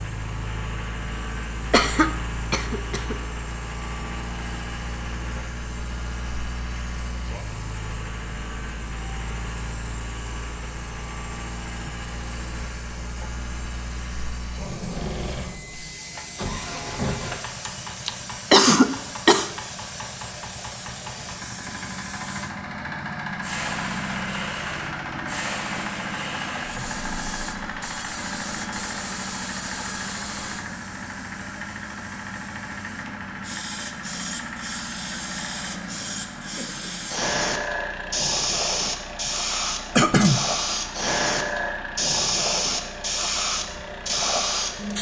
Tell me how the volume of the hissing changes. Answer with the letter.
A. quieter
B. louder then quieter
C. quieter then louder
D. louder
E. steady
D.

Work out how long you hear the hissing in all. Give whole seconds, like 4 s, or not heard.
45 s.